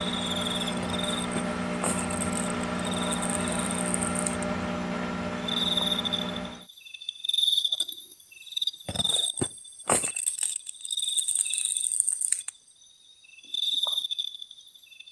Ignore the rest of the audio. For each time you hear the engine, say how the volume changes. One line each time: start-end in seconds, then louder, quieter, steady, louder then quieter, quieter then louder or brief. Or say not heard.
0.0-6.7 steady.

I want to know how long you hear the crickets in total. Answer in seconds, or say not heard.
15 s.